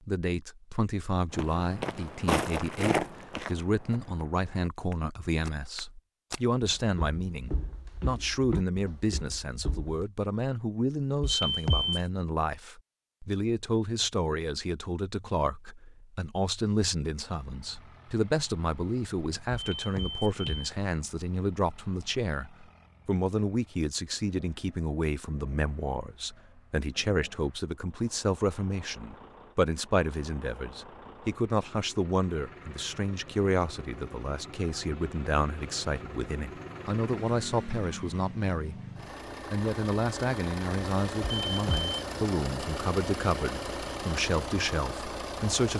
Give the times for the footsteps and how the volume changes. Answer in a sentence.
The footsteps can be heard from 1.3 to 10.1 s, getting quieter.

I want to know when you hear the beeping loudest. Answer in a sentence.
The loudest moment of the beeping is at 12 seconds.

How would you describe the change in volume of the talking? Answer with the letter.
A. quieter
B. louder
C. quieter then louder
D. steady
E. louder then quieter
D.